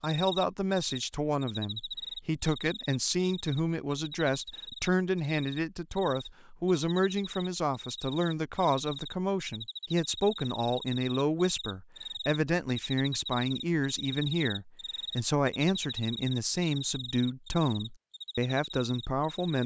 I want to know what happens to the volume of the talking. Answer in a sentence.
The volume of the talking stays about the same.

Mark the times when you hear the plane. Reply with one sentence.
You can't hear the plane here.